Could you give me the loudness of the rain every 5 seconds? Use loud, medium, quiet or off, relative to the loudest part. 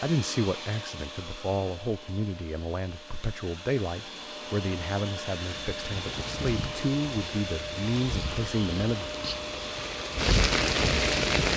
off, quiet, loud.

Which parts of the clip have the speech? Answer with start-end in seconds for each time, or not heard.
0.0-9.1.